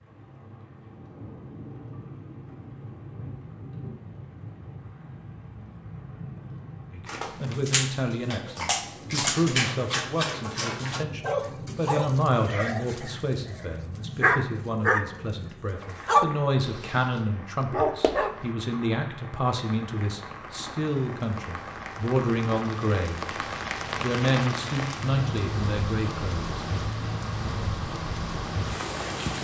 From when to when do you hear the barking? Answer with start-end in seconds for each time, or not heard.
7.0-15.2, 15.9-18.8.